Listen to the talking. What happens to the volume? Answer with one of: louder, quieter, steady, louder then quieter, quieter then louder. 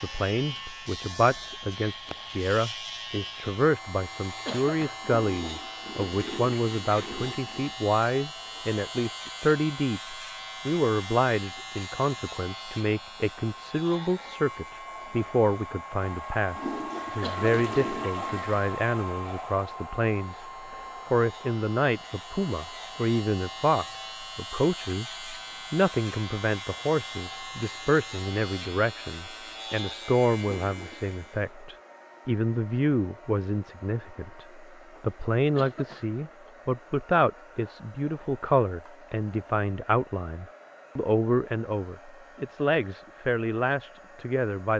steady.